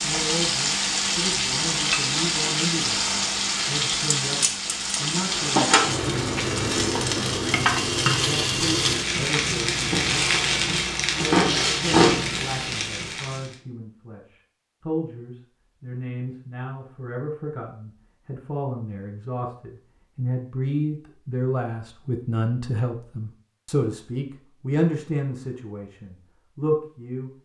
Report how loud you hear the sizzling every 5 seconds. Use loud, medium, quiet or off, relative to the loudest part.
loud, loud, loud, off, off, off.